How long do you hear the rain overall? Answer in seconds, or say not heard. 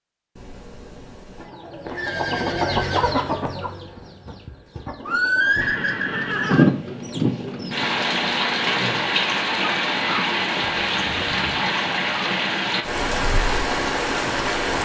9 s.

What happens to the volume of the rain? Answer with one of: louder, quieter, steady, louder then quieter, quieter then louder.
steady.